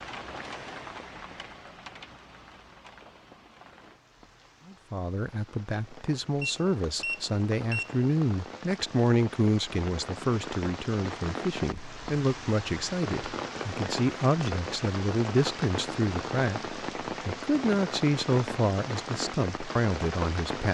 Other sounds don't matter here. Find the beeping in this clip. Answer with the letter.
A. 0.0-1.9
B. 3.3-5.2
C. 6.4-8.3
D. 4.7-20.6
C.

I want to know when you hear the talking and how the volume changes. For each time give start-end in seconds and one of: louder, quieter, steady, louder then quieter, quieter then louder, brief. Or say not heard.
4.7-20.6 steady.